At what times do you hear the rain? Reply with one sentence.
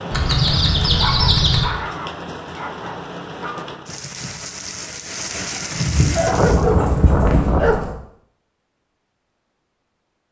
You can hear the rain from 0.0 to 6.7 s.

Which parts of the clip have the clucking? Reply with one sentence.
The clucking can be heard from 0.1 to 1.7 s and from 5.7 to 7.7 s.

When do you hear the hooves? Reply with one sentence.
You can hear the hooves from 6.3 to 8.0 s.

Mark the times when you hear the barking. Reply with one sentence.
You can hear the barking from 0.9 to 3.6 s and from 6.2 to 8.0 s.